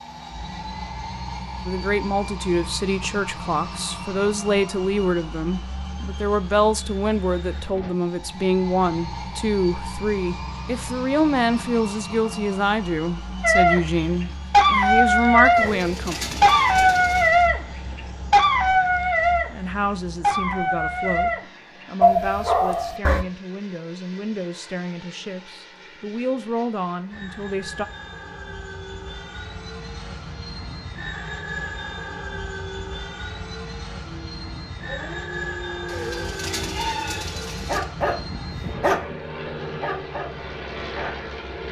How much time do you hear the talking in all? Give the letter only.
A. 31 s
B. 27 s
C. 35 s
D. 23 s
D.